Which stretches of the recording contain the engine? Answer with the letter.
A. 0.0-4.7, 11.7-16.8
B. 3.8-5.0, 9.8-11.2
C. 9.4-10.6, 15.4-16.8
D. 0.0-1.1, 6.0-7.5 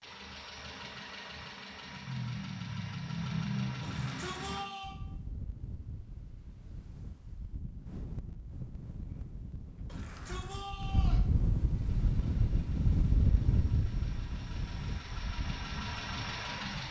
A.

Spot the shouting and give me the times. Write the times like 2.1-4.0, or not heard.
3.8-5.0, 9.8-11.2.